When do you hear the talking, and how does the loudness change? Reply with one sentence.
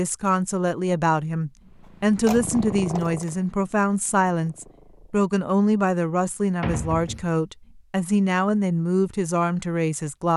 You can hear the talking from 0.0 to 10.3 s, at a steady volume.